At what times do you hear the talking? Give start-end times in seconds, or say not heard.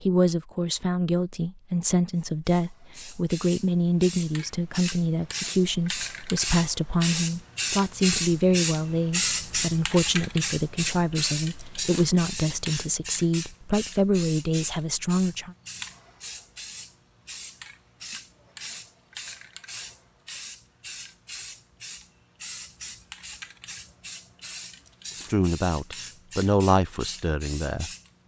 0.0-15.6, 25.1-28.2.